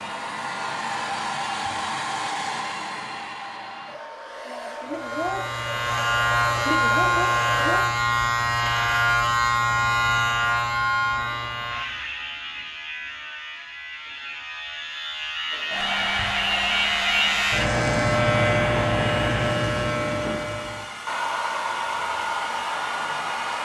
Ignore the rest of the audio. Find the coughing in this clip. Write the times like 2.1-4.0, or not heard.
not heard.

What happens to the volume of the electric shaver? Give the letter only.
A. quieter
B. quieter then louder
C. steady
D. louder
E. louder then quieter
B.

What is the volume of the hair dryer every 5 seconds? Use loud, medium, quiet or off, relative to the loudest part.
loud, loud, off, loud, loud.